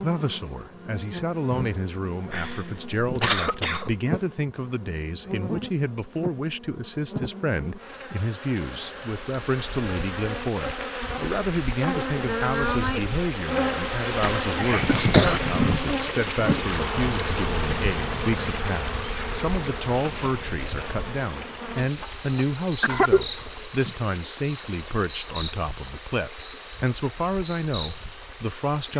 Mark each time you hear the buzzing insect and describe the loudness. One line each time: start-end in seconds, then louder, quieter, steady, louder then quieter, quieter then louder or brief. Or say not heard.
0.0-28.9 louder then quieter.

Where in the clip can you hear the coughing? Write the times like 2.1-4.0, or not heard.
2.3-3.9, 14.2-15.4, 22.8-23.9.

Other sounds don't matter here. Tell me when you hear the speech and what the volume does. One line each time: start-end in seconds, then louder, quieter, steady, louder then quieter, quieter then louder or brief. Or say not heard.
0.0-28.9 steady.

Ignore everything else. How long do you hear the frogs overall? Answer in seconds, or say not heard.
not heard.